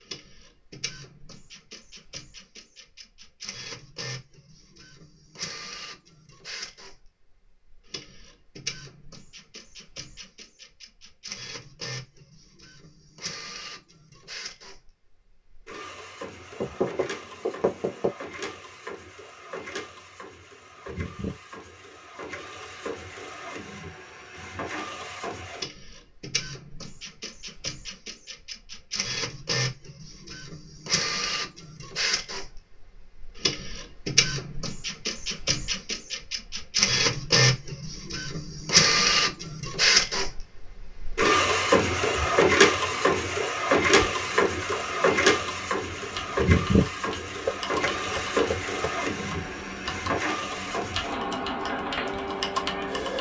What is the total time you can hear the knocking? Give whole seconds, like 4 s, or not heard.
3 s.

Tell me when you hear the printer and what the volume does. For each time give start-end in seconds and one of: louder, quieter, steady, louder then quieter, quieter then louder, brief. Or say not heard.
0.0-53.1 louder.